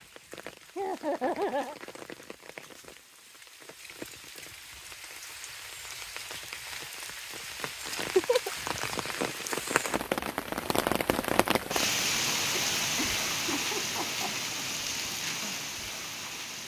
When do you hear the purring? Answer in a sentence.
The purring can't be heard in this clip.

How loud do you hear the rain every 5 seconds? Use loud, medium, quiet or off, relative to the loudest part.
quiet, medium, loud, medium.